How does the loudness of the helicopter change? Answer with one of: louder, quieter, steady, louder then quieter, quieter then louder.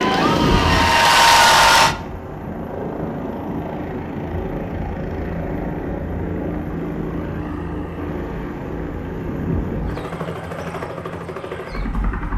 steady.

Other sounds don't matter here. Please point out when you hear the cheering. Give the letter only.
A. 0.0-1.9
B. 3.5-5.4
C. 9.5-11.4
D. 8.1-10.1
A.